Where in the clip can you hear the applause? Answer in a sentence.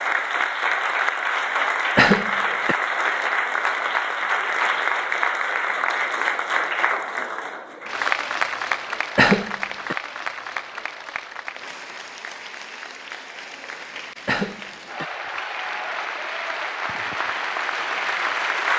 You can hear the applause from 0.0 to 18.7 s.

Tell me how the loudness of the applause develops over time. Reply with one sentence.
The volume of the applause goes down, then up.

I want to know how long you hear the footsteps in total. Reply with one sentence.
The footsteps can't be heard in this clip.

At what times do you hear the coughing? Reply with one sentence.
You can hear the coughing from 1.9 to 2.8 s, from 9.2 to 9.9 s and from 14.2 to 15.1 s.